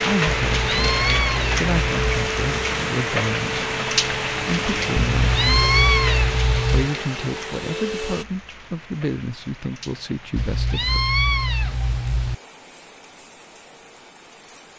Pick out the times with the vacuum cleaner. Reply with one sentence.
You can hear the vacuum cleaner from 0.1 to 8.2 s.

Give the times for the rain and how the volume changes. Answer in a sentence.
You can hear the rain from 0.0 to 14.7 s, getting quieter.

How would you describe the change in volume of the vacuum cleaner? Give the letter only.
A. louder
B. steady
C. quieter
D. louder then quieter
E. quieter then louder
B.